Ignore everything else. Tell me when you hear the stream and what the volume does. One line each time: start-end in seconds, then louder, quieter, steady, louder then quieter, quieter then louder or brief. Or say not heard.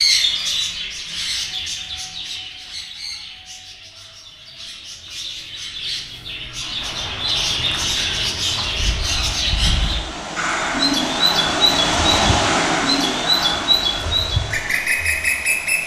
6.8-15.8 louder then quieter.